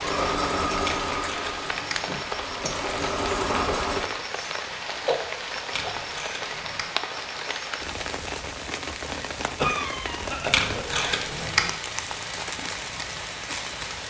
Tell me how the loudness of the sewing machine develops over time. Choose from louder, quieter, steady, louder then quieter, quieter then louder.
quieter then louder.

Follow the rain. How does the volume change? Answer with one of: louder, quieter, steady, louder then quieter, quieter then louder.
steady.